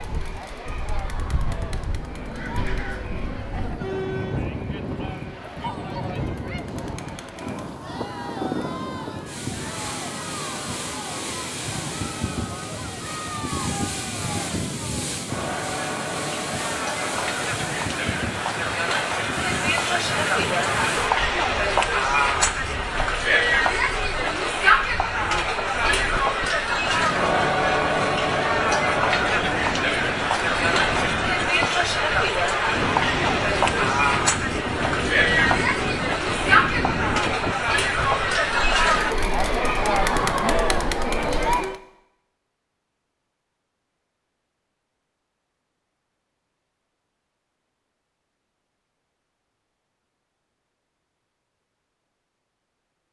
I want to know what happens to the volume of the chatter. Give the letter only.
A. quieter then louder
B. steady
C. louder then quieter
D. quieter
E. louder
E.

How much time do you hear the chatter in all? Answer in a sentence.
You can hear the chatter for 42 seconds altogether.